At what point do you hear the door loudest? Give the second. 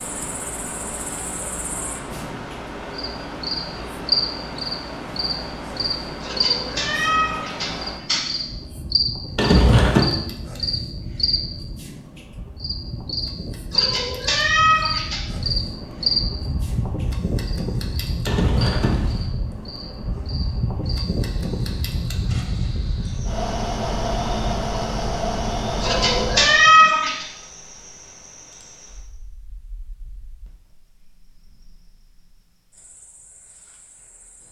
10 s.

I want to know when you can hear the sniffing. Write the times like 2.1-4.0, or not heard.
not heard.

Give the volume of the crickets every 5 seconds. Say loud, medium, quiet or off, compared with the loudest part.
loud, loud, loud, loud, quiet, quiet, quiet.